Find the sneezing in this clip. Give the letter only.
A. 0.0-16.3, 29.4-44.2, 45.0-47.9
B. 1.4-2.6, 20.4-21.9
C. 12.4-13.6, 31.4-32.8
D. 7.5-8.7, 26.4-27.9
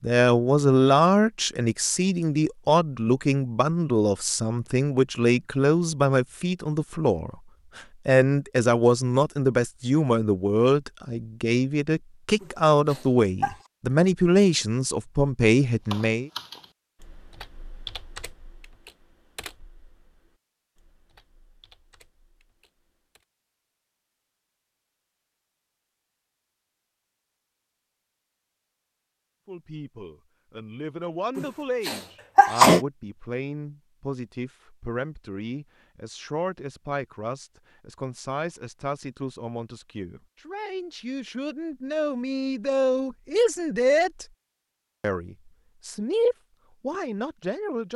C.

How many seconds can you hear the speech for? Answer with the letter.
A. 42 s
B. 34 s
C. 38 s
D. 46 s
B.